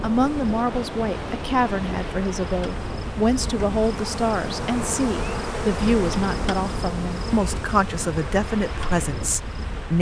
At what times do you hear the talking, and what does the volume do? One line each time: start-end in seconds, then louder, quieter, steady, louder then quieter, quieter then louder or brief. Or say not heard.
0.0-9.9 steady.